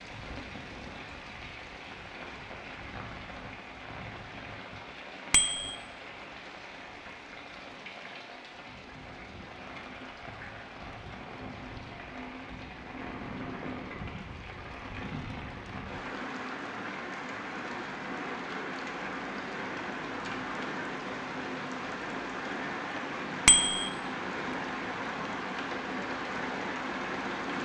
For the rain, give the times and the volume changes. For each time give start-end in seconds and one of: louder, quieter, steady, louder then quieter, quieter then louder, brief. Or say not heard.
0.0-27.6 louder.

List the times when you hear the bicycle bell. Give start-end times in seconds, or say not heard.
5.3-5.8, 23.4-23.9.